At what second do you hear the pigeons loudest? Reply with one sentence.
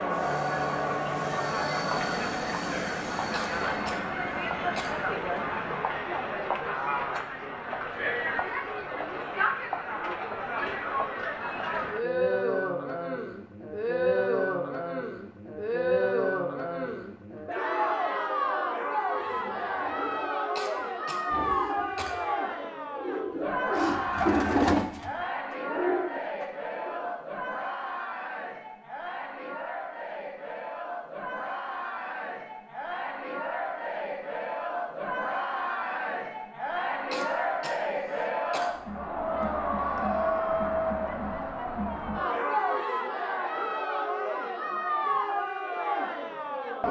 The loudest moment of the pigeons is at 25 seconds.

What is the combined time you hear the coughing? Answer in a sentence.
You can hear the coughing for 5 seconds altogether.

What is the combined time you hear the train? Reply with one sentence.
You can hear the train for 6 seconds altogether.